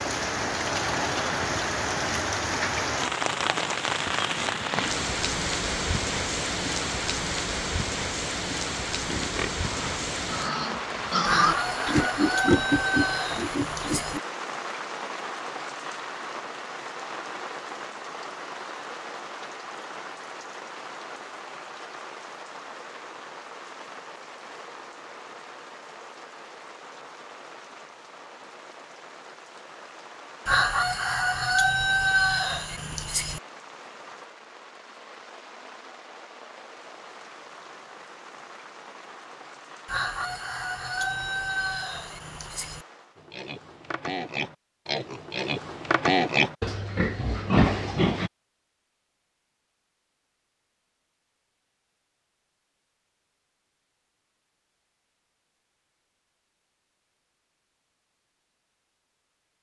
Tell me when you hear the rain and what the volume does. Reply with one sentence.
You can hear the rain from 0.0 to 43.2 s, getting quieter.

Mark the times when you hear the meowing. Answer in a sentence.
You can't hear the meowing here.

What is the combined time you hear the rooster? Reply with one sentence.
You can hear the rooster for 9 seconds altogether.